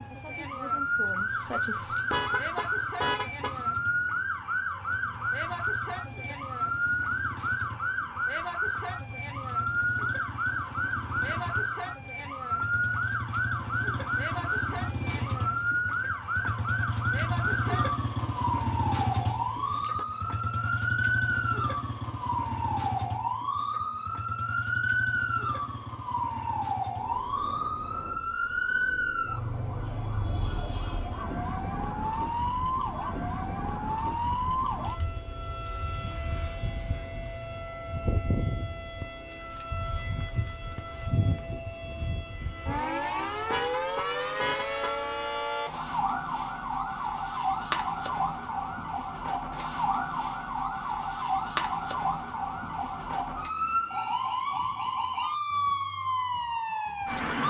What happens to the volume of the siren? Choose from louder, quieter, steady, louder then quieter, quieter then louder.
steady.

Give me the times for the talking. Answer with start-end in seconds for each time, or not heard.
0.0-1.9.